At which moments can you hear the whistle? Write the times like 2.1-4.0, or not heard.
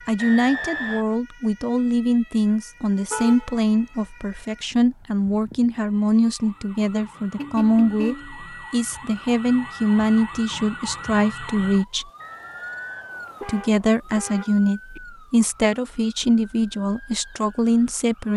0.1-1.1, 12.2-13.9.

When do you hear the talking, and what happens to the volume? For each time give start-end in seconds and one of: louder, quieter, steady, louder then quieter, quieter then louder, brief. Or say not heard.
0.1-12.1 steady
13.4-18.3 steady.